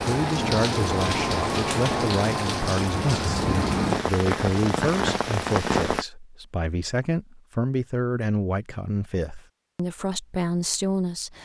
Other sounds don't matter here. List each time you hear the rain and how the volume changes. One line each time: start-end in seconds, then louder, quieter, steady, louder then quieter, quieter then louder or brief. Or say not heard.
0.0-6.0 steady.